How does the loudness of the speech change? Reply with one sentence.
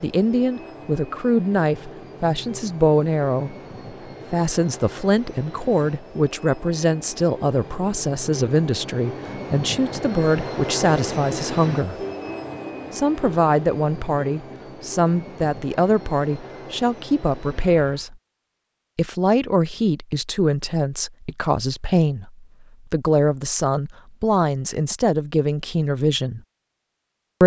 The loudness of the speech stays about the same.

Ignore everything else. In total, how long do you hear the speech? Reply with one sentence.
The speech can be heard for 24 seconds in total.